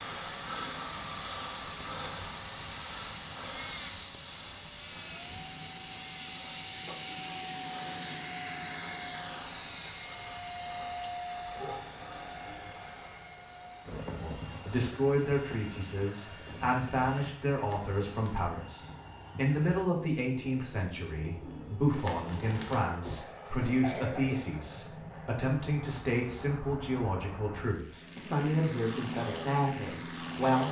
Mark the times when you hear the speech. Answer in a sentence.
You can hear the speech from 14.2 to 30.6 s.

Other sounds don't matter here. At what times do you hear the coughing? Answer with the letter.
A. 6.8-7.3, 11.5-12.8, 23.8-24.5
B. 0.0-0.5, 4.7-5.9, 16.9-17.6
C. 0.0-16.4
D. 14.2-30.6
A.